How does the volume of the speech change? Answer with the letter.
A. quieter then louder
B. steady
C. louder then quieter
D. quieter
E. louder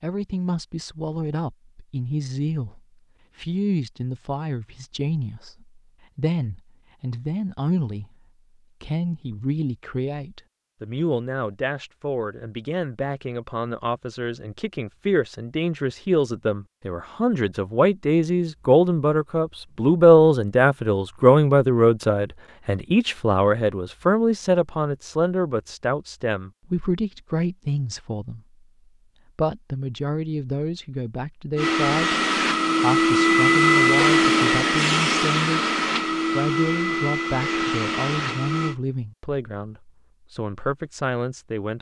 C.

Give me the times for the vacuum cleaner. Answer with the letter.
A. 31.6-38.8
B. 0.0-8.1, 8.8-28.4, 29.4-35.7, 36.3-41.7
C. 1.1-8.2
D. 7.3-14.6
A.